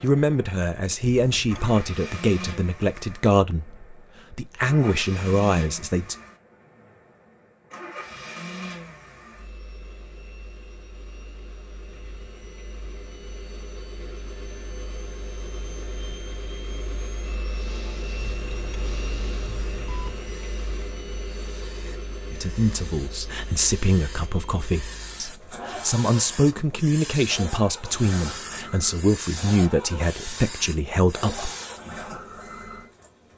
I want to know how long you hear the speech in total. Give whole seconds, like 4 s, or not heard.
15 s.